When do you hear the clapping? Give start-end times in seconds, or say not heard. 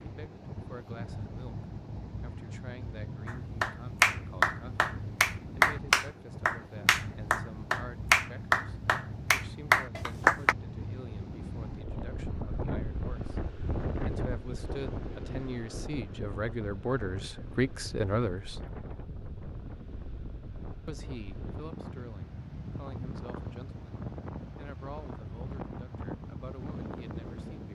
3.2-10.6.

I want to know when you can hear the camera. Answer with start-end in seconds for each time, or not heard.
not heard.